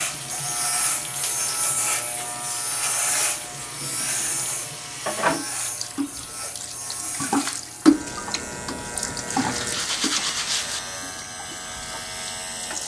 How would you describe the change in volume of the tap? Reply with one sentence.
The loudness of the tap goes up, then down.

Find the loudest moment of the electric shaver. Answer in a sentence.
The volume of the electric shaver peaks at 3 seconds.